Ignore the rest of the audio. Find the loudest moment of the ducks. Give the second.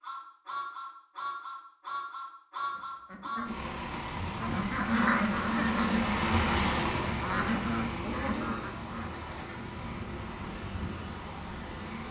5 s.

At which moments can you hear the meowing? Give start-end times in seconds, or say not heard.
not heard.